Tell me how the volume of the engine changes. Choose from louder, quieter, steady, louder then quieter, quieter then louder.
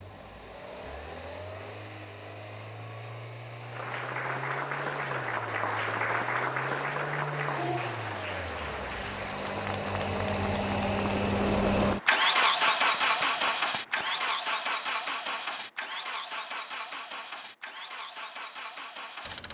louder then quieter.